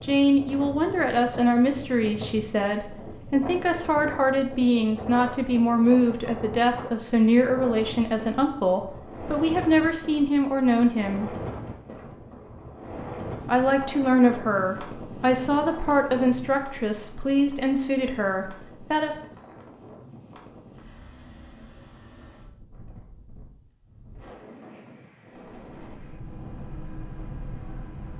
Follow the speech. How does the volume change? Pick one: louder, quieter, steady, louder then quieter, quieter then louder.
steady.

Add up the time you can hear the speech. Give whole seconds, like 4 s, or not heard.
17 s.